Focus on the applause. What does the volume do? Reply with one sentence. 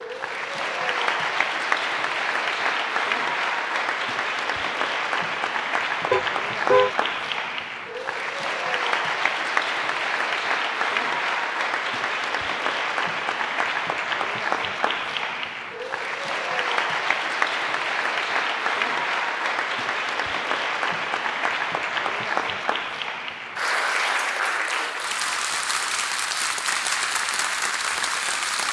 The loudness of the applause stays about the same.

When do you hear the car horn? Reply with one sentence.
You can hear the car horn from 6.1 to 6.9 s.